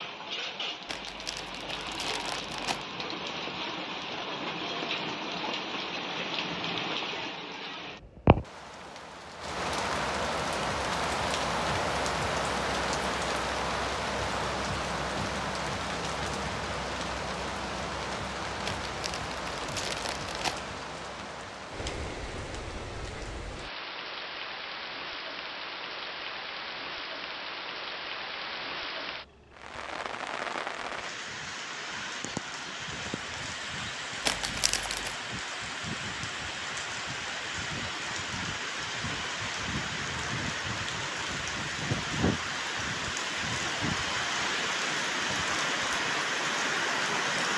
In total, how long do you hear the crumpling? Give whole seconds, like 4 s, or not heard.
5 s.